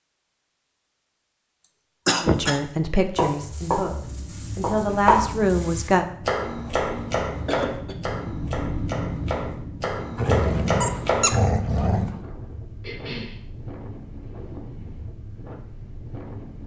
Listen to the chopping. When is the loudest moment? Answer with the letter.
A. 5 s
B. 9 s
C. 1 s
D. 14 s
A.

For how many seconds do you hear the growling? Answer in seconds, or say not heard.
2 s.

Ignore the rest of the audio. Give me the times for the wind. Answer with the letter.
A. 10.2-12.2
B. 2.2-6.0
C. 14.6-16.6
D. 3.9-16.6
D.